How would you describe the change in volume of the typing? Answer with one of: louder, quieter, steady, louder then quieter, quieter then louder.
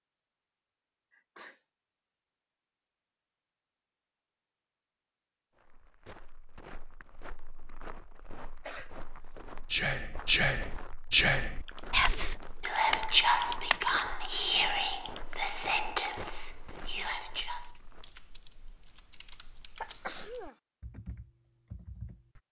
quieter then louder.